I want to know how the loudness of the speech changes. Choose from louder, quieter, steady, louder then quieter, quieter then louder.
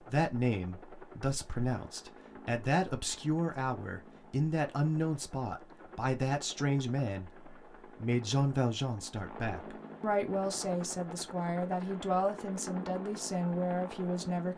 steady.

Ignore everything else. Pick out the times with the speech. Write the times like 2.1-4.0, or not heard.
0.0-14.5.